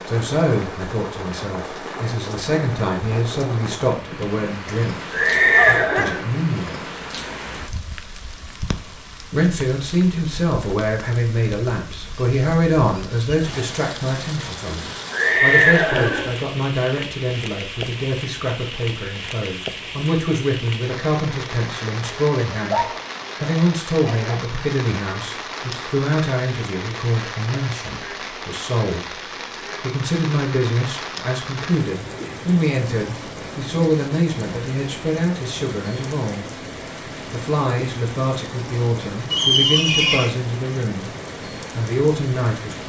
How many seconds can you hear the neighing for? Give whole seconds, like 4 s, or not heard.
3 s.